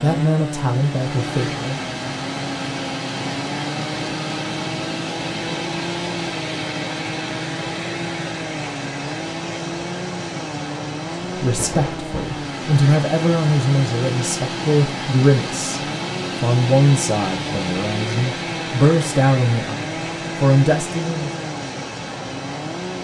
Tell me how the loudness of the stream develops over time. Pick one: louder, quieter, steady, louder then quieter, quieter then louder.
steady.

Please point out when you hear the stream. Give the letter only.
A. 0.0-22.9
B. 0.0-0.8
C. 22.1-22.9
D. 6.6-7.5
A.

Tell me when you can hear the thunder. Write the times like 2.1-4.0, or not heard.
11.6-12.4.